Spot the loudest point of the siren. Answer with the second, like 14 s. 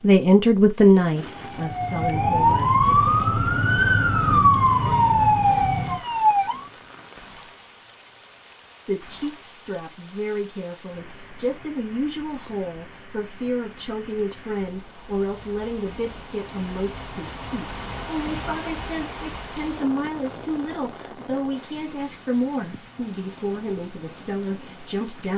5 s.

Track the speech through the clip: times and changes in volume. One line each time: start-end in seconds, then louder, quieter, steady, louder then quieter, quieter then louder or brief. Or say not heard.
0.0-2.8 brief
8.8-25.3 steady.